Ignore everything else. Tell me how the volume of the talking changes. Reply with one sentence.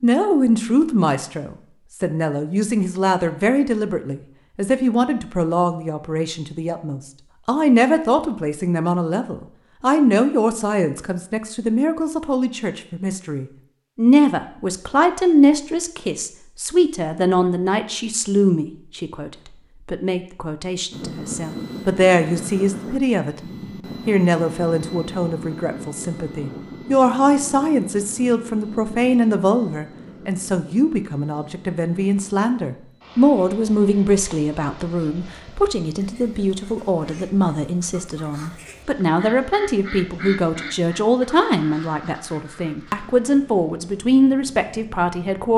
The loudness of the talking stays about the same.